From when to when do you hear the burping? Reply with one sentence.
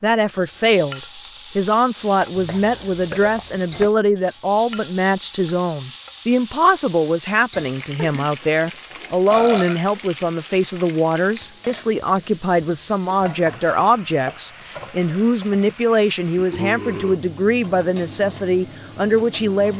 You can hear the burping from 2.2 to 3.9 s, from 8.0 to 9.8 s and from 16.4 to 17.2 s.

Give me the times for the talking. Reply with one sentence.
You can hear the talking from 0.0 to 19.7 s.